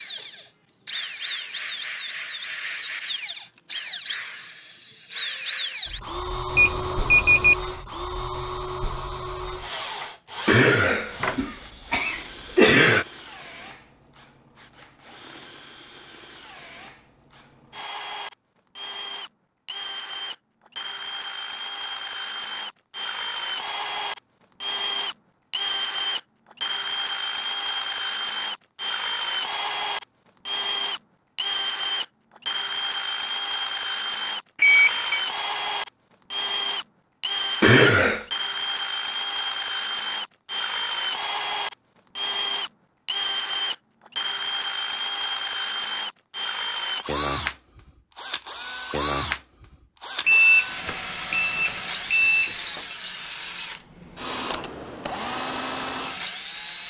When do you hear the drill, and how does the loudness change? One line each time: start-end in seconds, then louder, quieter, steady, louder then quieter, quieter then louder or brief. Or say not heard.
0.0-56.8 quieter then louder.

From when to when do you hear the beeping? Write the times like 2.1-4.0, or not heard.
6.5-7.5, 34.5-35.2, 50.2-53.0.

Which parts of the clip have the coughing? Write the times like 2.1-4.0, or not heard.
10.4-13.1, 37.6-38.2.